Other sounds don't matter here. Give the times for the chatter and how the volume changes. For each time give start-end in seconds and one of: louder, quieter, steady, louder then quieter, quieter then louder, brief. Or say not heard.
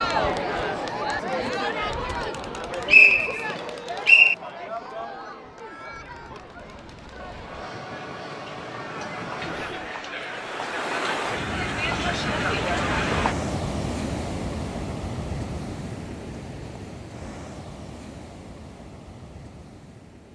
0.0-13.3 quieter then louder.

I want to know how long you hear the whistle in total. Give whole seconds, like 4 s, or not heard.
2 s.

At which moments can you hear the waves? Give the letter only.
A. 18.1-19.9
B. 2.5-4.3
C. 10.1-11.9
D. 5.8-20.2
D.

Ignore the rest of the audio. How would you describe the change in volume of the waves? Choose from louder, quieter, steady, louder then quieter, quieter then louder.
louder then quieter.